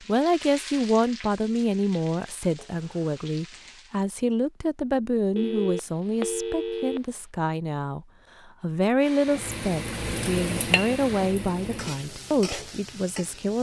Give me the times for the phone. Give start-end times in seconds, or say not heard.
5.3-7.0.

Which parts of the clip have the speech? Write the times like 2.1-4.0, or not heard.
0.0-13.5.